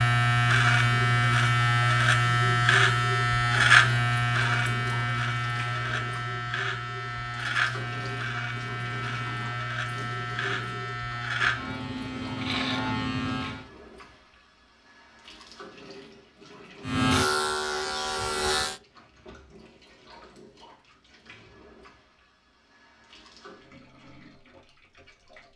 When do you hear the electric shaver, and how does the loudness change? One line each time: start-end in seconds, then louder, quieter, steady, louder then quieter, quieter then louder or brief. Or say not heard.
0.0-13.7 quieter
16.9-18.8 brief.